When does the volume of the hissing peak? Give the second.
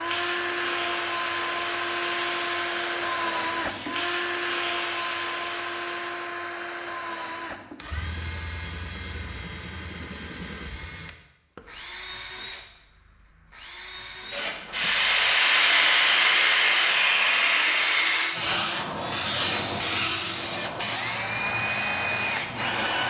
16 s.